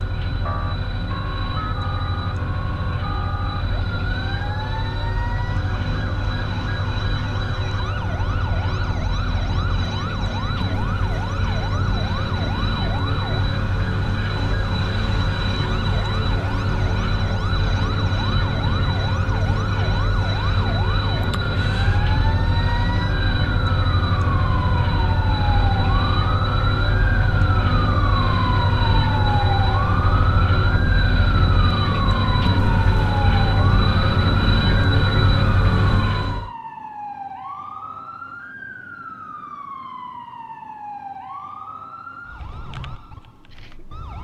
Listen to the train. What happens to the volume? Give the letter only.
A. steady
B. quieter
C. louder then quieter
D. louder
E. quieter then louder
D.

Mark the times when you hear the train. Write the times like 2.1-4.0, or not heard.
0.0-36.5.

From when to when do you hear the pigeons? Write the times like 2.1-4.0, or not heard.
not heard.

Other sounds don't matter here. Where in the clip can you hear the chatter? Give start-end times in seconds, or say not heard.
not heard.